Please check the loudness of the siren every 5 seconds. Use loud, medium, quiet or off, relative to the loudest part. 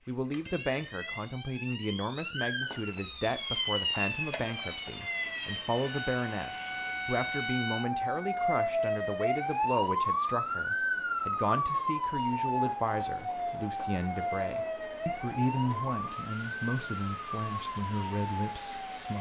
loud, loud, loud, medium.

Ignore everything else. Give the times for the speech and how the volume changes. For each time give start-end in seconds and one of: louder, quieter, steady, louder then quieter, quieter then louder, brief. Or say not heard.
0.1-19.1 steady.